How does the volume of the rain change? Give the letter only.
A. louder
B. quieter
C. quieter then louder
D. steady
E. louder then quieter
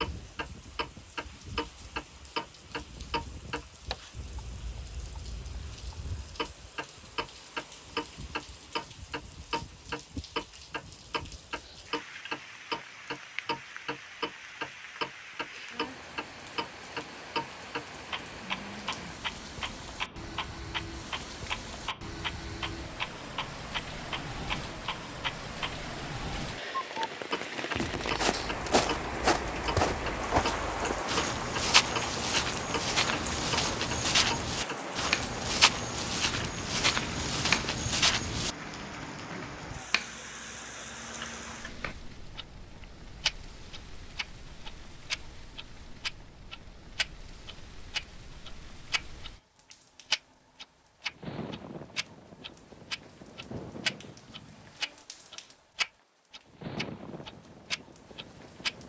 E.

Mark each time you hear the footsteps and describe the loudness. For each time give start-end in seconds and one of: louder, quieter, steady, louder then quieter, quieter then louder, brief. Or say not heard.
27.8-38.7 steady.